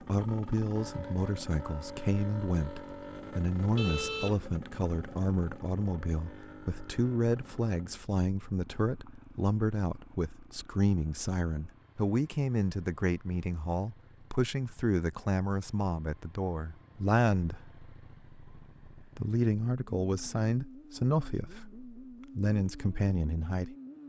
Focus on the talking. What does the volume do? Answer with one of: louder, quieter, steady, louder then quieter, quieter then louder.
steady.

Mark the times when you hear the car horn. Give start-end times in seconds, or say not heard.
3.8-4.5.